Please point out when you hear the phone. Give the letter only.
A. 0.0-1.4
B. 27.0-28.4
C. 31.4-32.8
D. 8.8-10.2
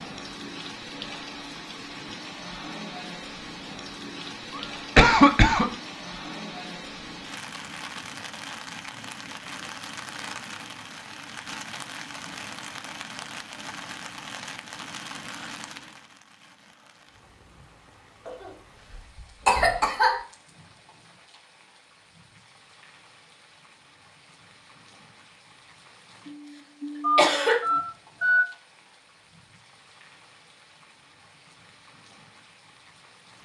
B.